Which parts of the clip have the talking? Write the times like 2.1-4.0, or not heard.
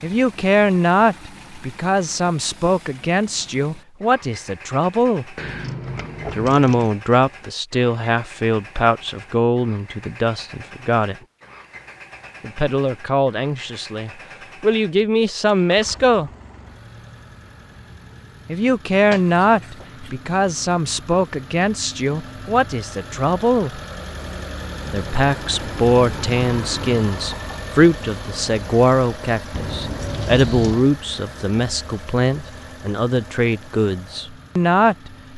0.0-5.3, 6.3-11.2, 12.4-16.3, 18.4-23.8, 24.9-35.1.